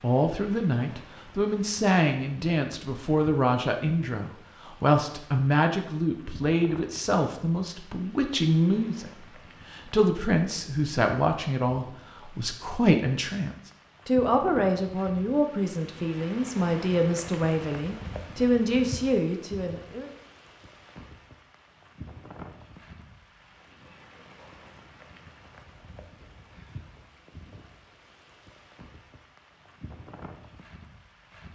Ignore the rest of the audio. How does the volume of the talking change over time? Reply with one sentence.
The volume of the talking stays about the same.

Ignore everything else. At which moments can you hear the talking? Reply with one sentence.
The talking can be heard from 0.0 to 20.1 s.